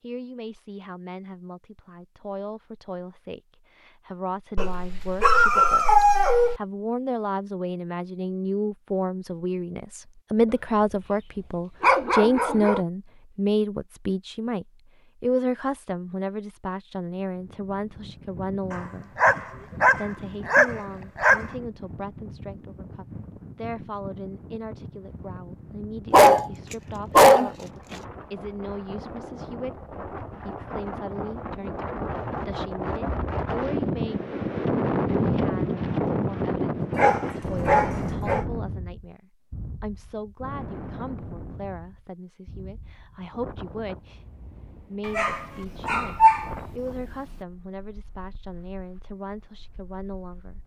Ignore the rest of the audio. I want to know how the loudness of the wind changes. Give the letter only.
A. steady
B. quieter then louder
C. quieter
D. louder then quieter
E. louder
D.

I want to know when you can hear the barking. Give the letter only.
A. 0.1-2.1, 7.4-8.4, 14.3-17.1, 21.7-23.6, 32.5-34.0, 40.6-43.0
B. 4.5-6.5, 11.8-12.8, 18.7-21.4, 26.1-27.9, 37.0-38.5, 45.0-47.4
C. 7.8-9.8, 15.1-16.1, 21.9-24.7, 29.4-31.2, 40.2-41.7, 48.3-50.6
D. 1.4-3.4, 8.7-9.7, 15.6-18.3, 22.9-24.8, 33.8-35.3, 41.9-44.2
B.